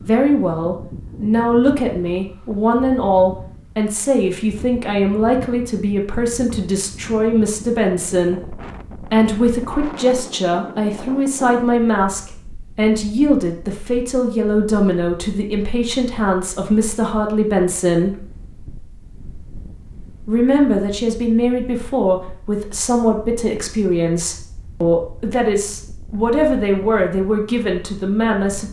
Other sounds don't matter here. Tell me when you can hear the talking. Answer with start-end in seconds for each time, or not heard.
0.0-18.2, 20.2-28.6.